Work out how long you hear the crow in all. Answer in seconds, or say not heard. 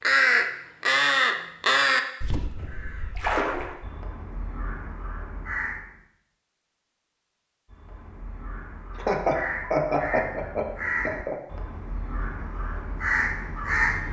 12 s.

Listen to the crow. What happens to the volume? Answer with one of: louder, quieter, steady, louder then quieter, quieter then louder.
quieter then louder.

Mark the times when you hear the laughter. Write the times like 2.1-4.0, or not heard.
8.9-11.3.